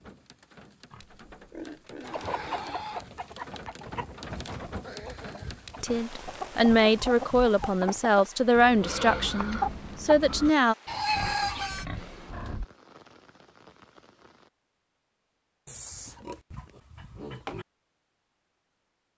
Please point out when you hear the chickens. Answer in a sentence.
The chickens can be heard from 2.0 to 11.8 s.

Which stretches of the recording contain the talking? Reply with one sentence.
The talking can be heard from 5.8 to 10.8 s.